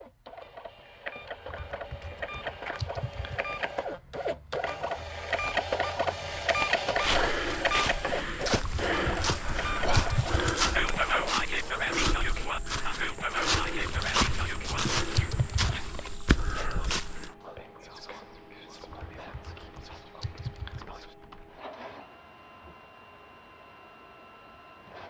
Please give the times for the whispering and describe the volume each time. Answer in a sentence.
The whispering can be heard from 9.4 to 21.1 s, getting quieter.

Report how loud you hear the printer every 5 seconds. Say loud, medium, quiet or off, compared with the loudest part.
medium, loud, medium, quiet, quiet.